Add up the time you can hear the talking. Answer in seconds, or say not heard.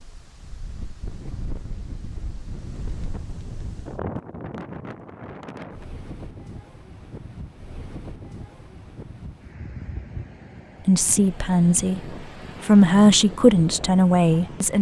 4 s.